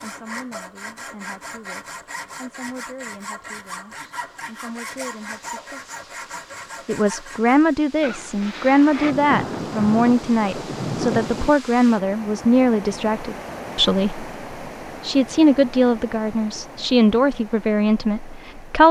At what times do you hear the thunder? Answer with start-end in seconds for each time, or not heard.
8.0-11.5.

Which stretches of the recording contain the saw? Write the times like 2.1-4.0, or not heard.
0.0-7.8.